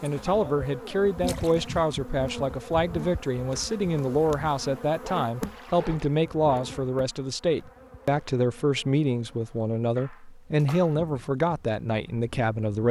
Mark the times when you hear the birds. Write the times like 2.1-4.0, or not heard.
not heard.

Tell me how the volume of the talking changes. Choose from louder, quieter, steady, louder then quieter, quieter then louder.
steady.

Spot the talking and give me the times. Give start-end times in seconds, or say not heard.
0.0-12.8.